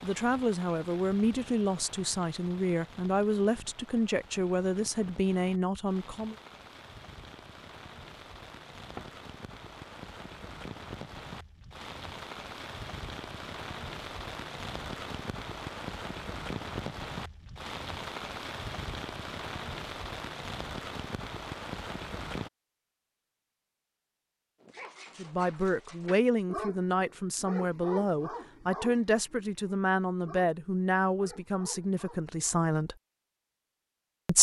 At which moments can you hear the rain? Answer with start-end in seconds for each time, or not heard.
0.0-22.5.